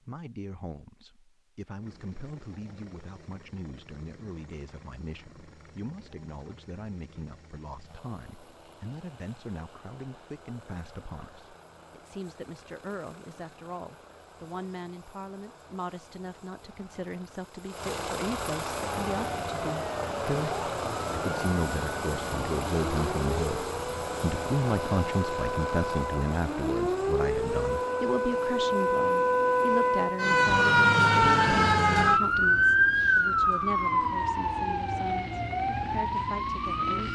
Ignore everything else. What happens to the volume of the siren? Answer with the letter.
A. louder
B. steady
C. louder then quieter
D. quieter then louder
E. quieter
C.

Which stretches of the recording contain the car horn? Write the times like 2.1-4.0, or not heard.
not heard.